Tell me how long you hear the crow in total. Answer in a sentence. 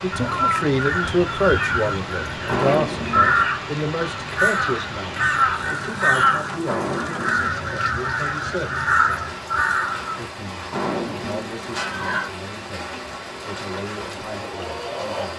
You can hear the crow for 10 seconds altogether.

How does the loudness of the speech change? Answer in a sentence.
The volume of the speech goes down.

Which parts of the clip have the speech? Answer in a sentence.
The speech can be heard from 0.0 to 8.8 s and from 10.2 to 15.3 s.